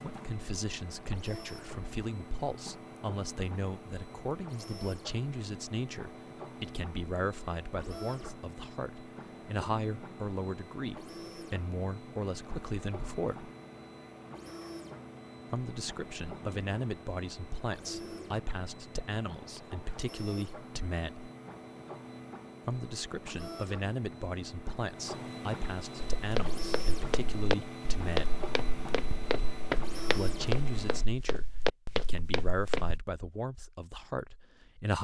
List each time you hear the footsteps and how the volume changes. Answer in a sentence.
The footsteps can be heard from 26.0 to 33.0 s, at a steady volume.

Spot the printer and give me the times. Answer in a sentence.
The printer can be heard from 0.0 to 31.1 s.